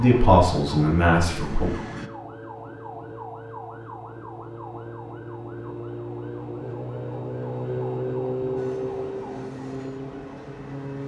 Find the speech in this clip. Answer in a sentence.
You can hear the speech from 0.0 to 1.7 s.